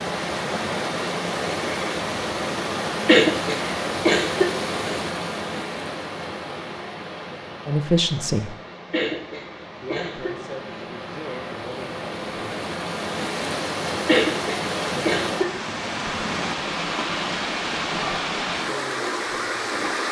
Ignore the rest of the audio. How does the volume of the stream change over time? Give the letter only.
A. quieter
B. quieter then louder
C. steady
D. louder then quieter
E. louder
B.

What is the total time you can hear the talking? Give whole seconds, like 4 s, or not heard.
6 s.